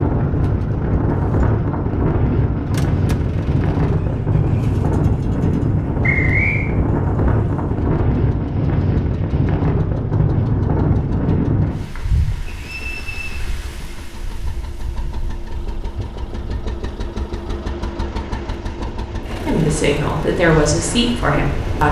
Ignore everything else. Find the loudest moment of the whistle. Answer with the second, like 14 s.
6 s.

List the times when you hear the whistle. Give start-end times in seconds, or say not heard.
6.0-6.7, 12.5-13.4.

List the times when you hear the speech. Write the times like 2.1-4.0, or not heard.
19.4-21.8.